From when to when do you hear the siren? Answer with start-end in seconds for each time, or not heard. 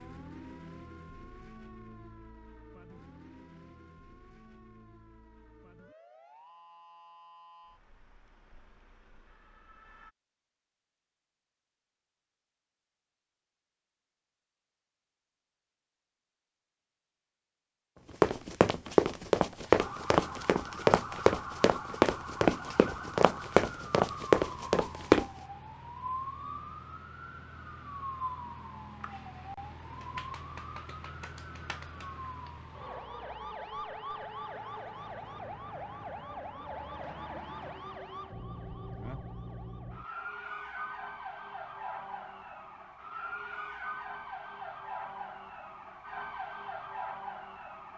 0.0-10.2, 19.8-47.9.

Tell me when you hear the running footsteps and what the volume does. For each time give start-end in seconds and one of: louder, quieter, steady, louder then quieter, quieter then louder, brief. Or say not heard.
18.2-25.2 steady.